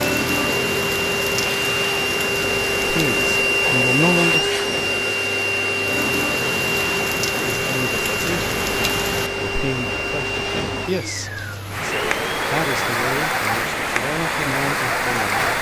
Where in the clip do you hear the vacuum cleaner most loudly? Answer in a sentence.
The volume of the vacuum cleaner peaks at 4 seconds.